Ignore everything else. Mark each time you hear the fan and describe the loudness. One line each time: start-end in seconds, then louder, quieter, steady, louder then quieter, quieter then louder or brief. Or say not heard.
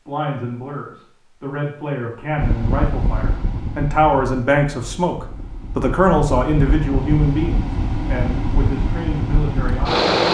2.4-10.2 quieter then louder.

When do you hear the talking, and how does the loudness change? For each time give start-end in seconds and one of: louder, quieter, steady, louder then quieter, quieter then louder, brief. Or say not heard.
0.1-10.1 louder then quieter.